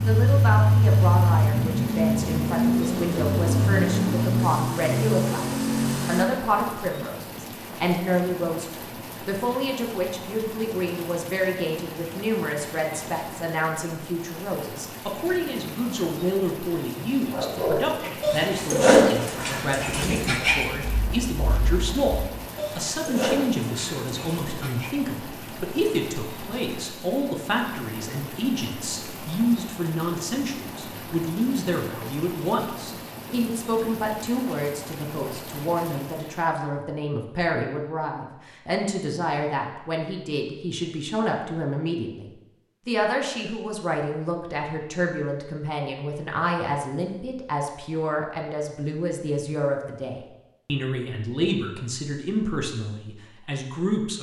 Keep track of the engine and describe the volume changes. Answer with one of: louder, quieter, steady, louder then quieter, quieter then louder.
steady.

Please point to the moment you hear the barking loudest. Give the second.
19 s.